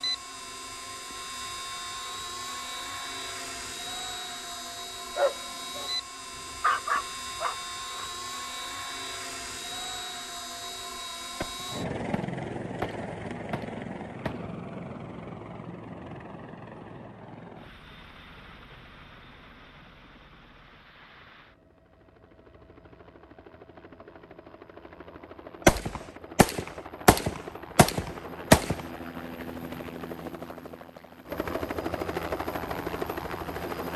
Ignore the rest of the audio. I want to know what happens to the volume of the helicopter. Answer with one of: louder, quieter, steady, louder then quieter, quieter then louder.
quieter then louder.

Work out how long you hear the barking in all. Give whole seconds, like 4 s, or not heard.
3 s.